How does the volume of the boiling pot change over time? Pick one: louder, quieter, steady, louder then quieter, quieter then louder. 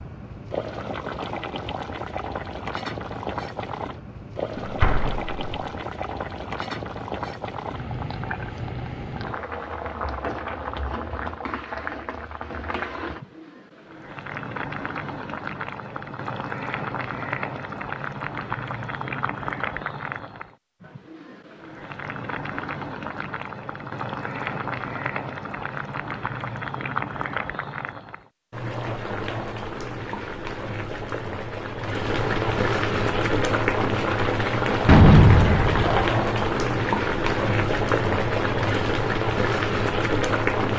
louder.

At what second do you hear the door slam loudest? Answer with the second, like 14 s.
35 s.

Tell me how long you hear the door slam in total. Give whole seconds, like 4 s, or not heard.
2 s.